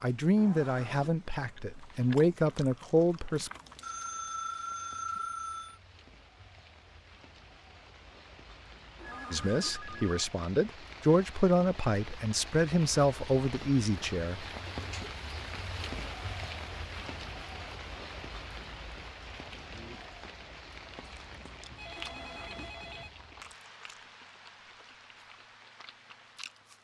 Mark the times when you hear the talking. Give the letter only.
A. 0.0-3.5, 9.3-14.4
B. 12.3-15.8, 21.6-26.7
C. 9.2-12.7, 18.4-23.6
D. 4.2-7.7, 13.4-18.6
A.